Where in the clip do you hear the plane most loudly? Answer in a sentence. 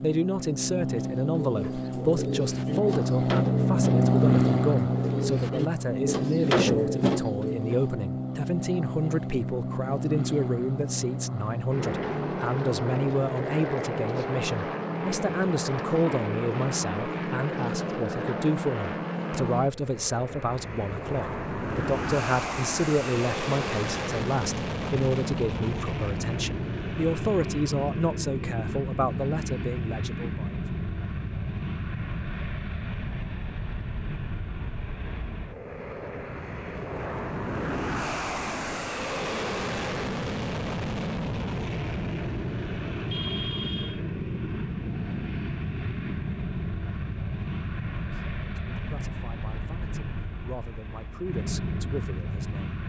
The loudest moment of the plane is at 4 seconds.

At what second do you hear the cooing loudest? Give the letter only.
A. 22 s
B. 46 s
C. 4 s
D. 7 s
D.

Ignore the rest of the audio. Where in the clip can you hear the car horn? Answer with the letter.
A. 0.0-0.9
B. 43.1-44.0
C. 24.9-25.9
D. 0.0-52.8
B.